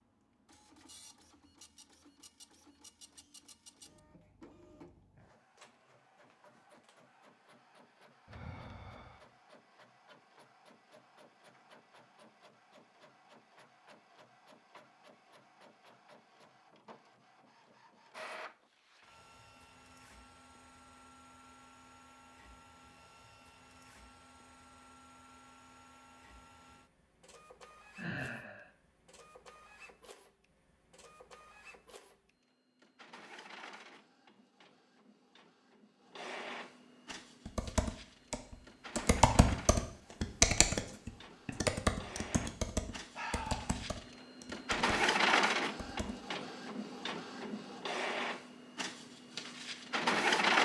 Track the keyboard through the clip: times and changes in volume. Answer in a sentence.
The keyboard can be heard from 37.5 to 46.1 s, getting quieter.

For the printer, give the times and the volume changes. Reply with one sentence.
The printer can be heard from 0.0 to 50.5 s, getting louder.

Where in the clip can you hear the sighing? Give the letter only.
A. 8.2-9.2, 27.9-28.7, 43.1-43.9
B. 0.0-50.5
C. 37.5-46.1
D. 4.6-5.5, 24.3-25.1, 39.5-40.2
A.